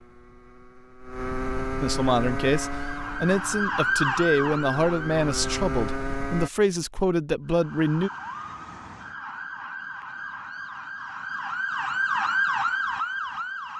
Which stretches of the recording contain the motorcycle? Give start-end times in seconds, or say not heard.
0.0-6.5.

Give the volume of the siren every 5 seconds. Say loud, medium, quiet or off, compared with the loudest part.
loud, medium, loud.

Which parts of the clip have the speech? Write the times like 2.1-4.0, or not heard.
1.8-8.1.